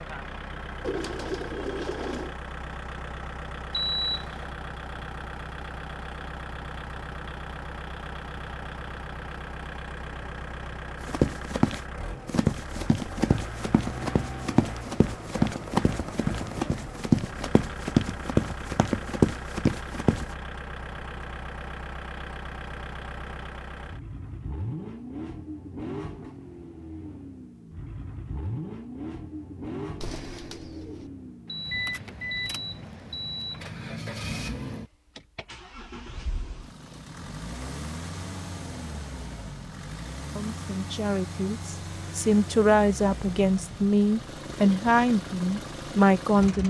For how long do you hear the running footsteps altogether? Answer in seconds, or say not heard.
9 s.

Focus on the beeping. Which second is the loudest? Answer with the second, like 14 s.
4 s.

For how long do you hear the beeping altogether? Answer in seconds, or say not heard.
3 s.